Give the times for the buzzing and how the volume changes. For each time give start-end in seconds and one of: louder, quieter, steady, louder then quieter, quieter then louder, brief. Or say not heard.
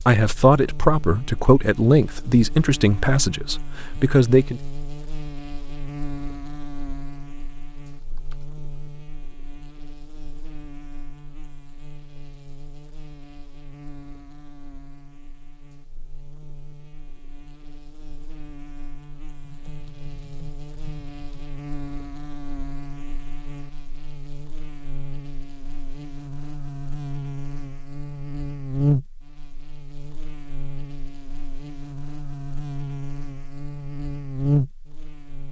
0.0-35.4 quieter then louder.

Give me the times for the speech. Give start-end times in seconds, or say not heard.
0.0-4.6.